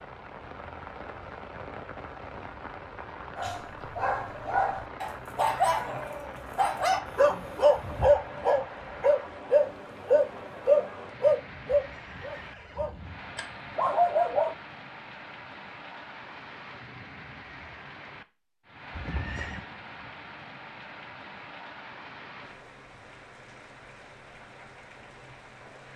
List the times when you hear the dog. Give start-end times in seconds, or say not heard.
3.4-14.6.